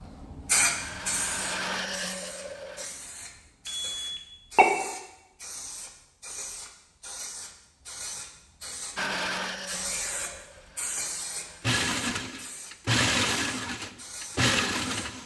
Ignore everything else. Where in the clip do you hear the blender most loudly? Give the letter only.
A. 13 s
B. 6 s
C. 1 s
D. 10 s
A.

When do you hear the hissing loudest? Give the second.
1 s.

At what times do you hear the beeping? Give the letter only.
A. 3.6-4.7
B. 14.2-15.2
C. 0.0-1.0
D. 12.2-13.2
A.